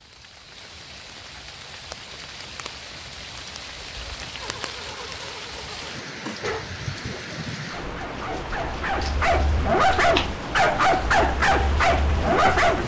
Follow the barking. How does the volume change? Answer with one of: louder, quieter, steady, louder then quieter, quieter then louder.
louder.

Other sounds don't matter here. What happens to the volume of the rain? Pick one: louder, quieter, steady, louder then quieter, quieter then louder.
louder.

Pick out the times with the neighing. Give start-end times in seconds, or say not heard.
4.3-6.4.